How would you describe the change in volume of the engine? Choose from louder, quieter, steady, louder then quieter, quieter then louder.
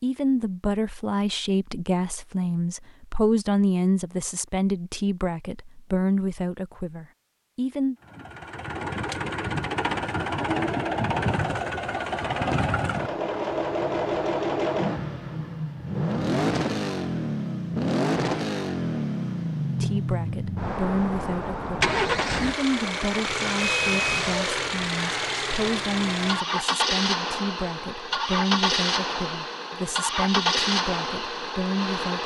steady.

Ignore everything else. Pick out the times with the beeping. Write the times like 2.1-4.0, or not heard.
23.6-24.2.